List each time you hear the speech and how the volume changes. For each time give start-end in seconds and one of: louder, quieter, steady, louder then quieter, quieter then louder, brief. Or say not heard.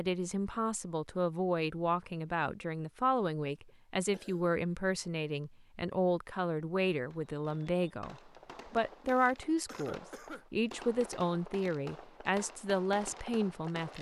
0.0-13.9 steady.